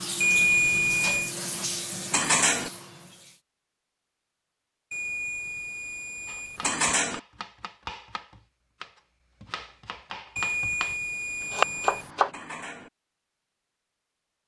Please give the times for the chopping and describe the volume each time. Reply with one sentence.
The chopping can be heard from 6.2 to 12.3 s, getting louder.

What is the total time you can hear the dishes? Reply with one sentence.
You can hear the dishes for 2 seconds altogether.